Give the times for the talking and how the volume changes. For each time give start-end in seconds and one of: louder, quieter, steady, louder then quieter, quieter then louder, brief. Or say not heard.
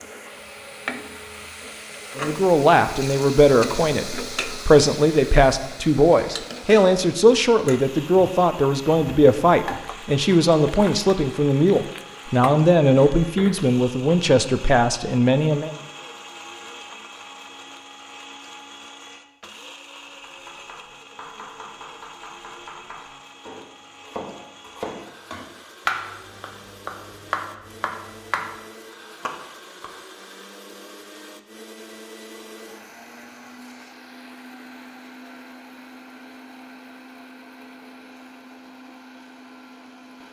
2.1-15.7 steady.